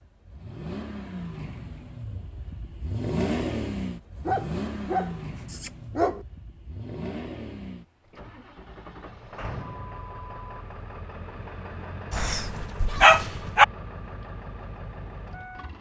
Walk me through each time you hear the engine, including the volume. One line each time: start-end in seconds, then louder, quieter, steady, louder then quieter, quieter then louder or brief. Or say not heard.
0.0-15.7 quieter.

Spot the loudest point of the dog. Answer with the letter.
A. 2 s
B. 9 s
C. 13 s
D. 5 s
C.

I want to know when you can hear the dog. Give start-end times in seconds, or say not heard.
4.2-6.2, 12.1-13.7.